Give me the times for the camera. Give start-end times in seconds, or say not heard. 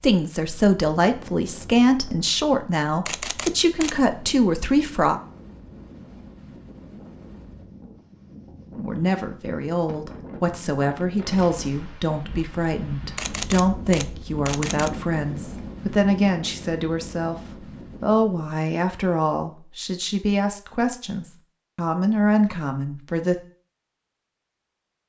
3.0-4.1, 13.2-14.9.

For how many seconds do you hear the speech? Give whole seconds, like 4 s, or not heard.
20 s.